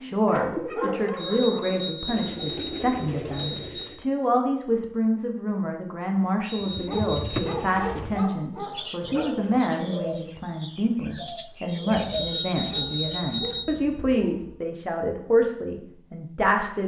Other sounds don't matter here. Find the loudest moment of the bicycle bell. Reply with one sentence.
The loudest moment of the bicycle bell is at 13 seconds.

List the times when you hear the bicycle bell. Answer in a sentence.
You can hear the bicycle bell from 1.1 to 3.9 s, from 6.5 to 7.5 s and from 12.1 to 13.7 s.